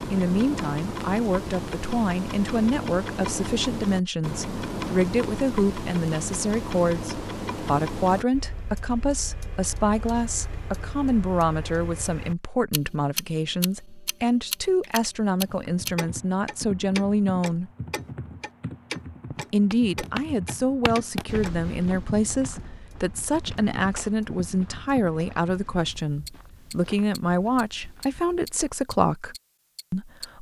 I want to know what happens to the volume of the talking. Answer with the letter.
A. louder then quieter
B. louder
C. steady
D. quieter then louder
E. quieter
C.